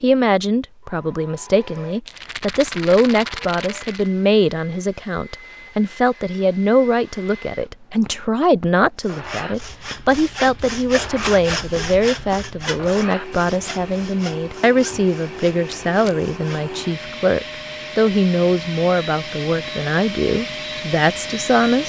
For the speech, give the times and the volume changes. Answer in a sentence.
The speech can be heard from 0.0 to 21.8 s, at a steady volume.